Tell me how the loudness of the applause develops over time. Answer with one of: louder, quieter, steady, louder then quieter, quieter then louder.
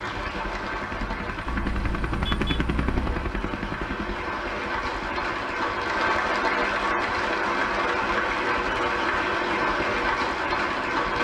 louder.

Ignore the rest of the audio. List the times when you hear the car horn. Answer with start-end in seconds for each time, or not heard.
1.4-3.3.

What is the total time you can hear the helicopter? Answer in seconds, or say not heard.
11 s.